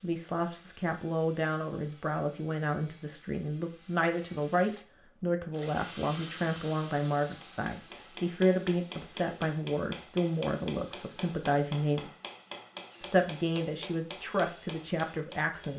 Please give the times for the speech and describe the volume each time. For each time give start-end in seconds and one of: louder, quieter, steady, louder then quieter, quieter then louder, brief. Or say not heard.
0.0-12.1 steady
13.0-15.7 brief.